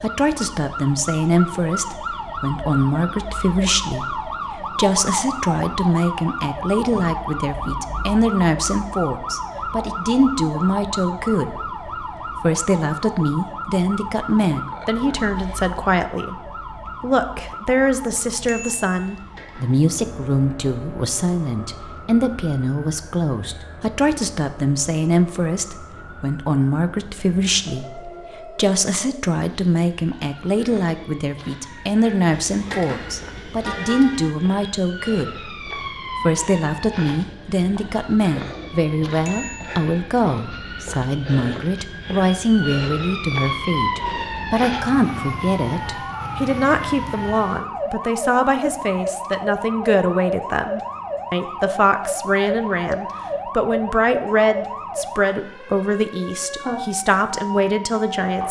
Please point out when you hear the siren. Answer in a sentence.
You can hear the siren from 0.0 to 58.4 s.